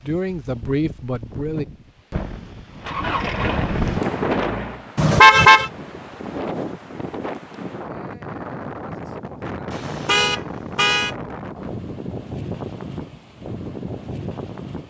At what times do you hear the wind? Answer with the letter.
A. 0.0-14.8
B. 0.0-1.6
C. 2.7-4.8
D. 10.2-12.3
A.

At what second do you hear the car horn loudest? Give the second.
5 s.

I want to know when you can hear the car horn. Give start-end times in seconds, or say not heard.
5.0-5.7, 9.7-11.2.